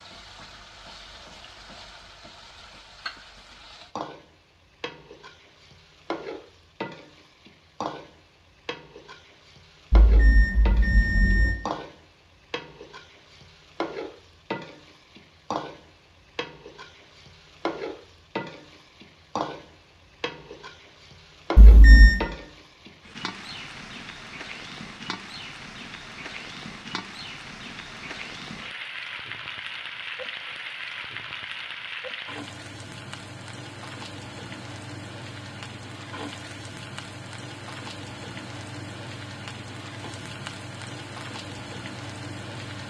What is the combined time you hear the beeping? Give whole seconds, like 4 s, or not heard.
2 s.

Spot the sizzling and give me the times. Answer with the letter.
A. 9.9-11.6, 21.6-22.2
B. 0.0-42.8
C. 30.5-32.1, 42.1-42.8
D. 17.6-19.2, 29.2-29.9
B.